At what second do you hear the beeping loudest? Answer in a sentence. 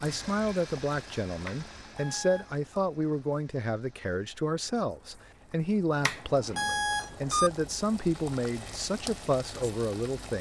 The volume of the beeping peaks at 7 seconds.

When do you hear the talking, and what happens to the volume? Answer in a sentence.
The talking can be heard from 0.0 to 10.3 s, at a steady volume.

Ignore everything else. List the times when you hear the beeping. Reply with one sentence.
You can hear the beeping from 1.4 to 2.6 s and from 6.0 to 7.5 s.